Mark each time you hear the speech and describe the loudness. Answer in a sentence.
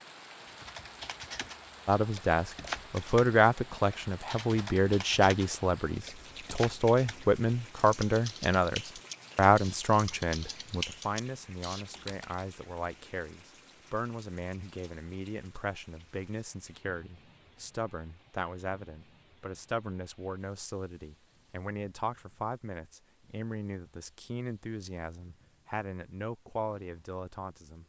You can hear the speech from 1.9 to 27.8 s, getting quieter.